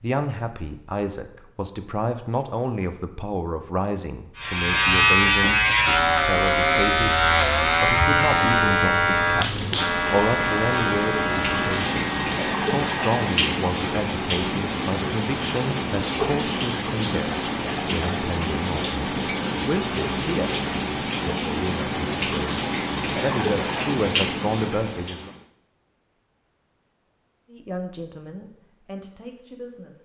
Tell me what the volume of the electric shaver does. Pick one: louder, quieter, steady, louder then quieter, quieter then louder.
quieter.